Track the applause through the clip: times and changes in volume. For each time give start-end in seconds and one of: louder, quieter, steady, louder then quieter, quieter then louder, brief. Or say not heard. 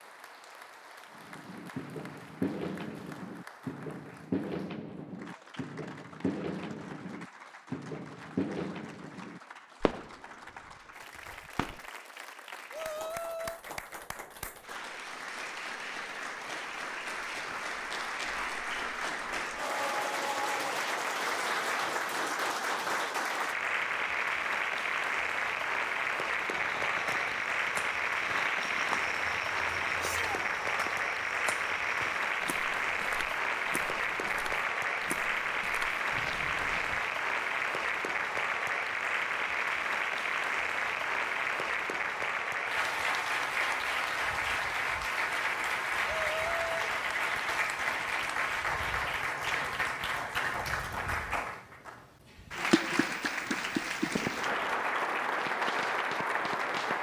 0.0-56.9 louder.